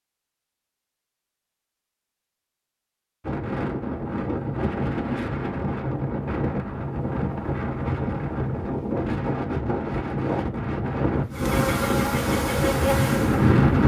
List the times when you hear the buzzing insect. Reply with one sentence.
The buzzing insect can be heard from 11.3 to 13.8 s.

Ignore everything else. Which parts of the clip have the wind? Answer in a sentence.
The wind can be heard from 3.2 to 13.8 s.